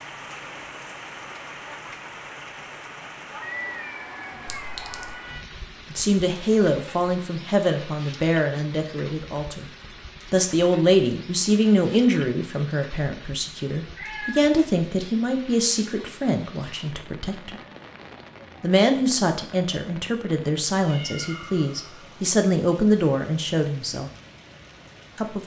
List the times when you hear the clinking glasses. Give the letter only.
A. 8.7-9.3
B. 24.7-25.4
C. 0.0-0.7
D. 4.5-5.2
D.